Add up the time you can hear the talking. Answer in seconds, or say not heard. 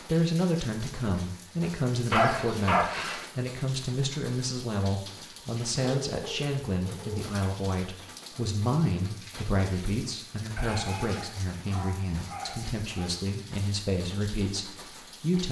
15 s.